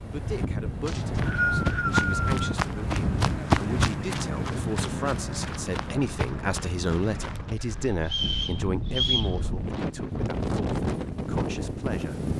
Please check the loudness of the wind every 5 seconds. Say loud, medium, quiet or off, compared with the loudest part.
loud, medium, loud.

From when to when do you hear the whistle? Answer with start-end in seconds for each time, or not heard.
0.8-2.3, 8.1-9.3.